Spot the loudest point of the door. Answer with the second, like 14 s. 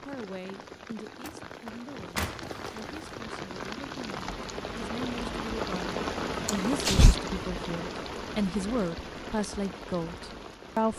7 s.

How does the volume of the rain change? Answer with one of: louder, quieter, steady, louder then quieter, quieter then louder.
louder then quieter.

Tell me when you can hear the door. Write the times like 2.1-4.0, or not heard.
1.2-3.0, 6.5-7.2.